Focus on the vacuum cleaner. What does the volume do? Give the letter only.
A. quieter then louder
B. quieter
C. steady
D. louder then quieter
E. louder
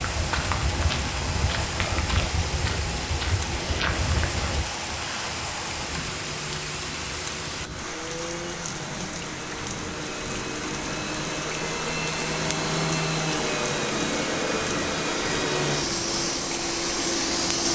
E.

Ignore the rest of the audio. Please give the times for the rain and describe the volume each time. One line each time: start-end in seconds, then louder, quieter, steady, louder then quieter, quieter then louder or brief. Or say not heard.
0.0-17.6 steady.